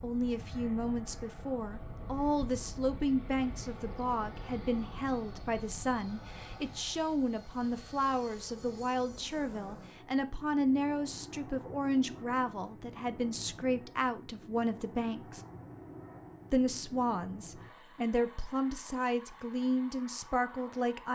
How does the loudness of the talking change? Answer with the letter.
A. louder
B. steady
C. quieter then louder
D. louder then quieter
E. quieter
B.